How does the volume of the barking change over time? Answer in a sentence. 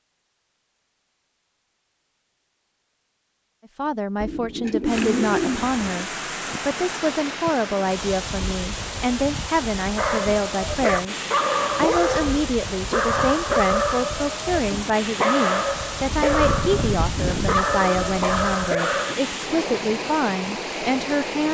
The loudness of the barking stays about the same.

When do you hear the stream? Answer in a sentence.
The stream can be heard from 4.8 to 21.4 s.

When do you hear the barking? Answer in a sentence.
The barking can be heard from 9.9 to 19.1 s.